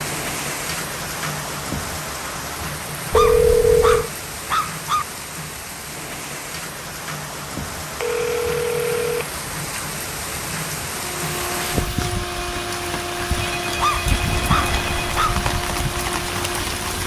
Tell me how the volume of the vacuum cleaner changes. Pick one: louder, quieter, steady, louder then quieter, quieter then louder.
steady.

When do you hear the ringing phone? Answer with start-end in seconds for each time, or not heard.
3.1-4.1, 8.0-9.2, 13.3-15.2.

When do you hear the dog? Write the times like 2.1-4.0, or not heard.
3.1-5.0, 13.8-15.4.